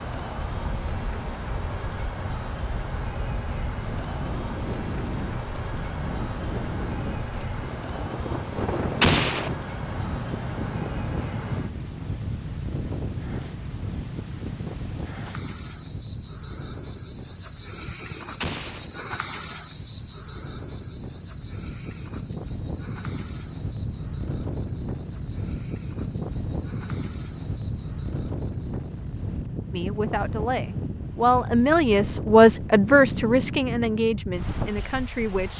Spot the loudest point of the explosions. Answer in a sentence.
The volume of the explosions peaks at 9 seconds.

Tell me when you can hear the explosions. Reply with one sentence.
You can hear the explosions from 9.0 to 9.5 s and from 18.4 to 18.9 s.